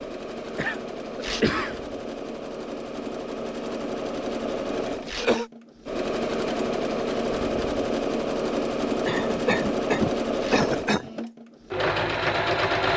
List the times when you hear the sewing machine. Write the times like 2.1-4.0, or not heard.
0.0-12.9.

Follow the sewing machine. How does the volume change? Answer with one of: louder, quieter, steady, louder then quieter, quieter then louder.
louder.